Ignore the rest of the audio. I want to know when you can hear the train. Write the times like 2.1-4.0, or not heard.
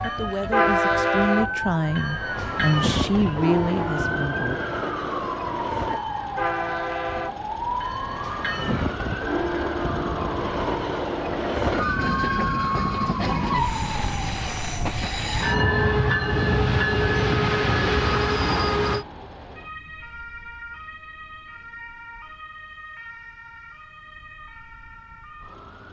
0.0-19.1.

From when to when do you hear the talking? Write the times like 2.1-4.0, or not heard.
0.0-4.6.